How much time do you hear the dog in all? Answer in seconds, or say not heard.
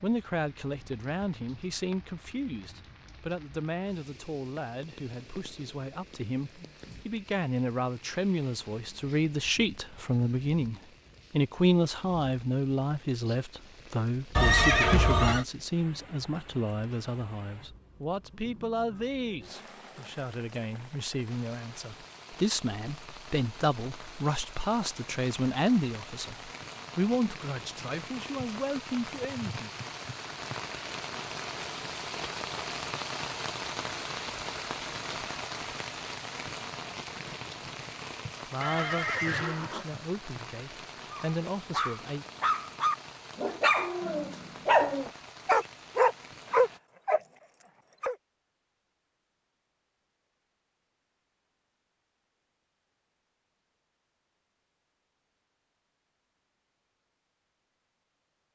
7 s.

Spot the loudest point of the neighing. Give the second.
15 s.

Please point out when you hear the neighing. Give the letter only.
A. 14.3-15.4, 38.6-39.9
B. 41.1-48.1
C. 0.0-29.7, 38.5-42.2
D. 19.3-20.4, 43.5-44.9
A.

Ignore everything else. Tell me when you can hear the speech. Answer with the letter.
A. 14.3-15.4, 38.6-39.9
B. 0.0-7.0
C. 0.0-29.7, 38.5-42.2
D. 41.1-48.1
C.